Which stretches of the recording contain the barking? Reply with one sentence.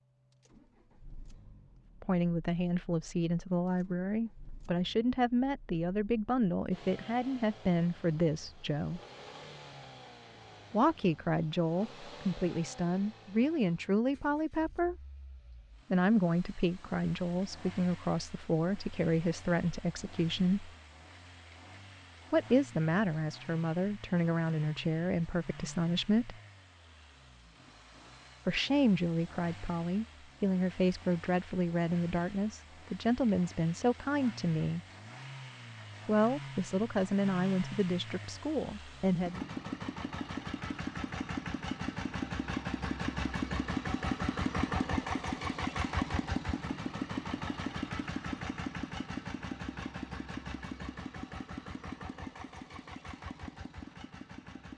The barking can't be heard in this clip.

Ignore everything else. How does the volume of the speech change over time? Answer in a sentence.
The volume of the speech stays about the same.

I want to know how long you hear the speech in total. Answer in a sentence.
You can hear the speech for 30 seconds altogether.